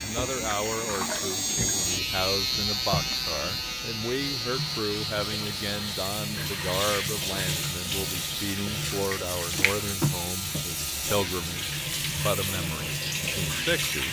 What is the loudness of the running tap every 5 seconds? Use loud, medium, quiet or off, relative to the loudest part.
medium, loud, loud.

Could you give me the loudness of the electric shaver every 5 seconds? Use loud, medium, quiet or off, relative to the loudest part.
loud, medium, medium.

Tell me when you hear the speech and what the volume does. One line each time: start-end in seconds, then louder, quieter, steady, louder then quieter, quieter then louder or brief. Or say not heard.
0.0-14.0 steady.